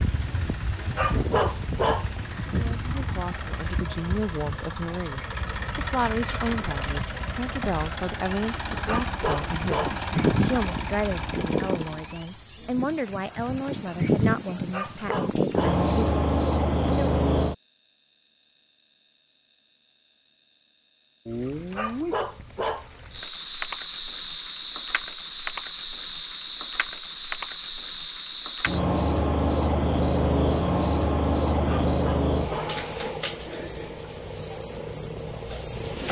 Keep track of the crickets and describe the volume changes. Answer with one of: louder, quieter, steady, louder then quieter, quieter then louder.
steady.